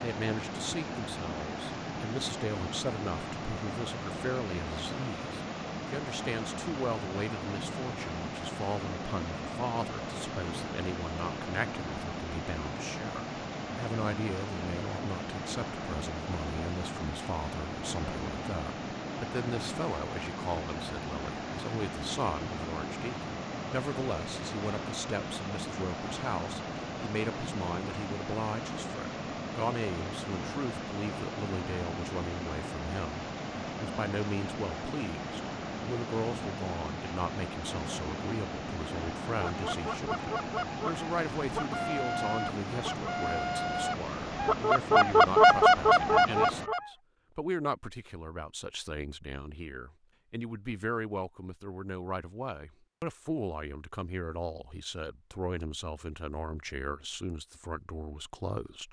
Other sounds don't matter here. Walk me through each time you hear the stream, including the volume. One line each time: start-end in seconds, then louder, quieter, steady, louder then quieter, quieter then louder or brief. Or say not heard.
0.0-46.7 steady.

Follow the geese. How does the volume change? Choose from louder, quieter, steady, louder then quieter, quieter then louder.
louder.